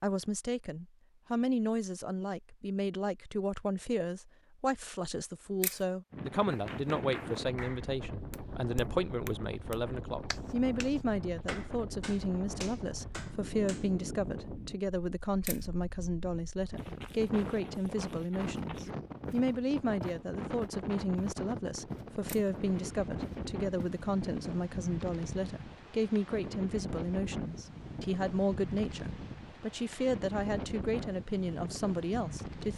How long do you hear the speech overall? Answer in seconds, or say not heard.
33 s.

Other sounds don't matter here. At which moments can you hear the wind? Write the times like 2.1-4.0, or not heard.
6.1-32.7.